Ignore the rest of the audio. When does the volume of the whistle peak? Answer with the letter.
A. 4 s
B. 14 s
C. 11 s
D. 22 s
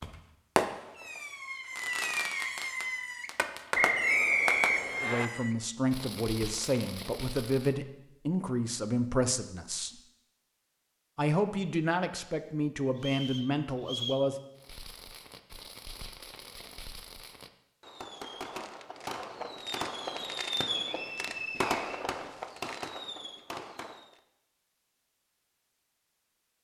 A.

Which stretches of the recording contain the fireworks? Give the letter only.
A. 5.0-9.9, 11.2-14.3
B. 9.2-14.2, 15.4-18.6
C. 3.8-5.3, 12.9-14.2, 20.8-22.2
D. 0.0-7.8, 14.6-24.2
D.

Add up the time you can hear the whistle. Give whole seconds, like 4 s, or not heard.
4 s.